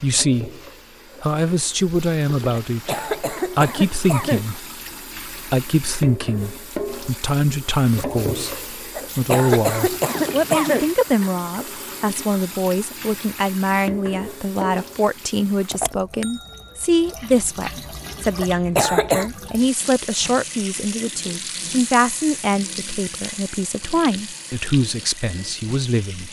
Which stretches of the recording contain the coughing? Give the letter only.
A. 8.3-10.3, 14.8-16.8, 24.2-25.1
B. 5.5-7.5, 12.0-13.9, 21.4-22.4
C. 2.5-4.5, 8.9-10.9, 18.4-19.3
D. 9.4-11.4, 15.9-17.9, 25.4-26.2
C.